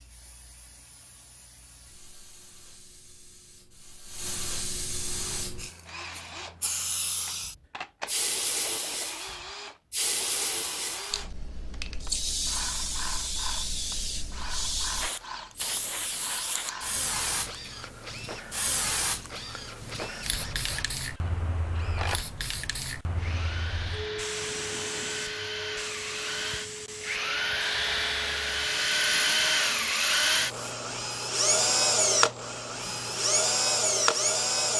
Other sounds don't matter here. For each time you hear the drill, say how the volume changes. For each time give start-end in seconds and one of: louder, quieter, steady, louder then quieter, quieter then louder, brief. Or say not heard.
4.9-34.7 louder.